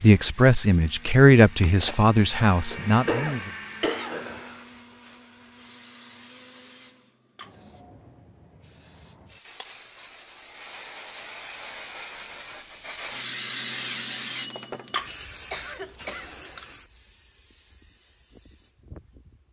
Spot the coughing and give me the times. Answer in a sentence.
The coughing can be heard from 2.7 to 4.6 s and from 15.5 to 16.4 s.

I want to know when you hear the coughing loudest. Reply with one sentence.
The volume of the coughing peaks at 3 seconds.